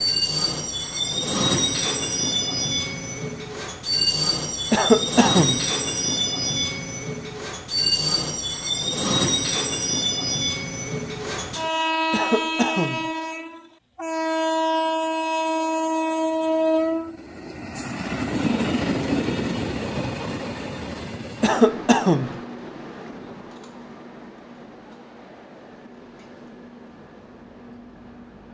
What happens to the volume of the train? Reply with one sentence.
The loudness of the train goes down.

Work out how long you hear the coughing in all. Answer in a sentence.
You can hear the coughing for 3 seconds altogether.